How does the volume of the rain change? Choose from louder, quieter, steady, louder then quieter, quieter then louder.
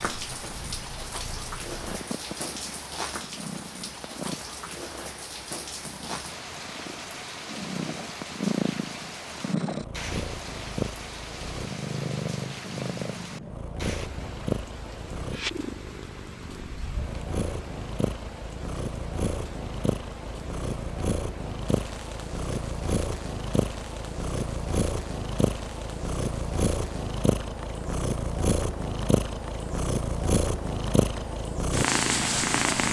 quieter.